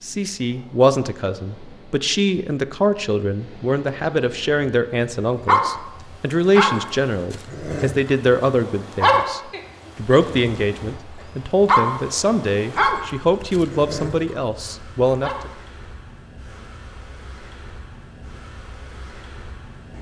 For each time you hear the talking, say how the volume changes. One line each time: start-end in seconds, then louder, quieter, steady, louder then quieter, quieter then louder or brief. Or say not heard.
0.0-15.5 steady.